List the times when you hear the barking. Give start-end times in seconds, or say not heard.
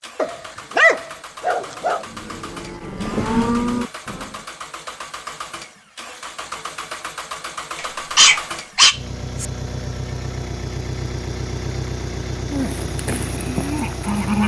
0.1-2.0, 7.8-9.4.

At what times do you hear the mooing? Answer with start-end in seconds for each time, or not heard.
2.0-4.5, 12.4-14.4.